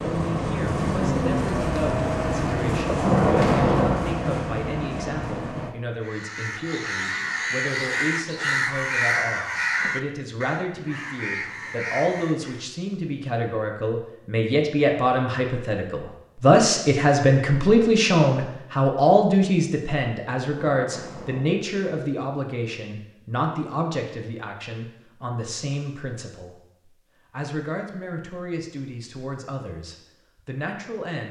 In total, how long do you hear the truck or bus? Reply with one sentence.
You can hear the truck or bus for 6 seconds altogether.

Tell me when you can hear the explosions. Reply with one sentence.
You can hear the explosions from 2.9 to 4.2 s and from 20.6 to 21.6 s.